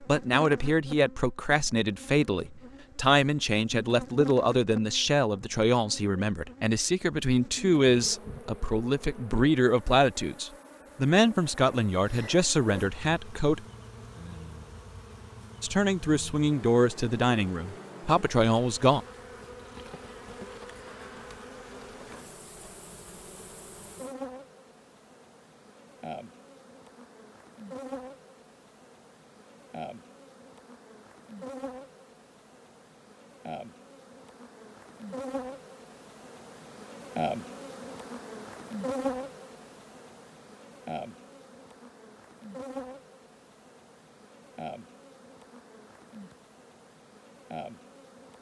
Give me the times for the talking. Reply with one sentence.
You can hear the talking from 0.0 to 13.6 s and from 15.6 to 19.0 s.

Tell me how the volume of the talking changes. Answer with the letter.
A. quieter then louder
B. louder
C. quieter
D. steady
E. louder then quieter
D.